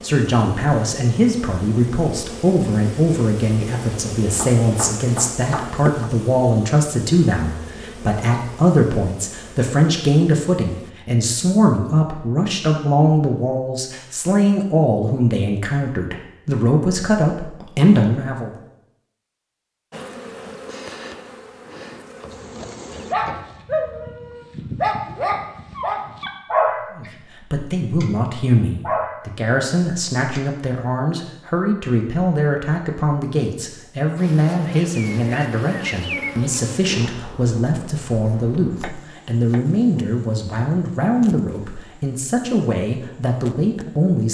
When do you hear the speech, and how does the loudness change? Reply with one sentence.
The speech can be heard from 0.0 to 18.5 s, at a steady volume; and from 26.9 to 44.3 s, at a steady volume.